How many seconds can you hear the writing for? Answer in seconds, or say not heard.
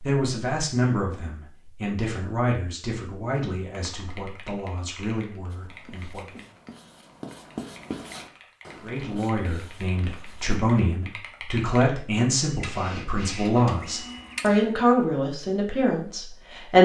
5 s.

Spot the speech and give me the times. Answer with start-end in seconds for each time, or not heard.
0.0-6.5, 8.8-16.7.